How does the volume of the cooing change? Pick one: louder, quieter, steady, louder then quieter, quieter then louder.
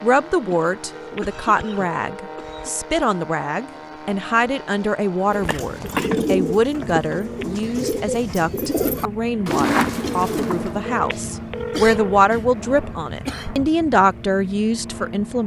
quieter then louder.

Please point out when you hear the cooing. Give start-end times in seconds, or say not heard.
5.2-10.8.